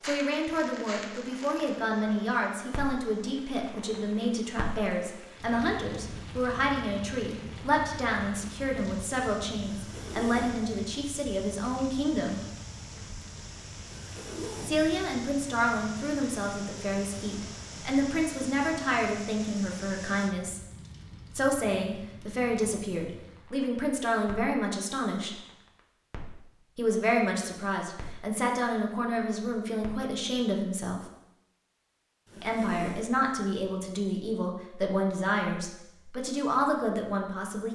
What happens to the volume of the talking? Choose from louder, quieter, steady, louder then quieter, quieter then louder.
steady.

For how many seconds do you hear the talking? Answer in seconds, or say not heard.
32 s.